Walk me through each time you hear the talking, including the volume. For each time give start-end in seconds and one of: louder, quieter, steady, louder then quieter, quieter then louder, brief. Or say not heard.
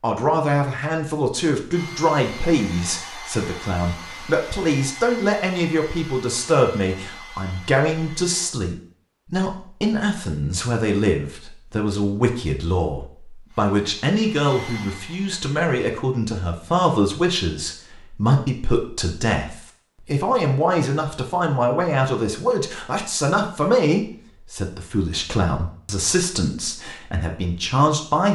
0.0-28.3 steady.